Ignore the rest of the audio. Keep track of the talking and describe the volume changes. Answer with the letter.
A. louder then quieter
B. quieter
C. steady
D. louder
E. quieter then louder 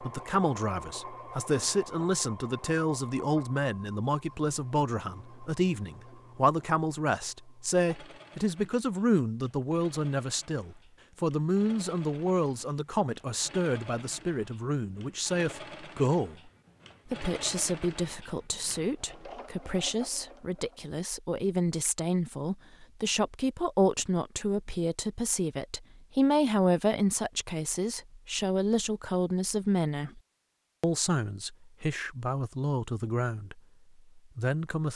C.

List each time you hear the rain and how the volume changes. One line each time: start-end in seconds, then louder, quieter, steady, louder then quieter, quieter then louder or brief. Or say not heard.
not heard.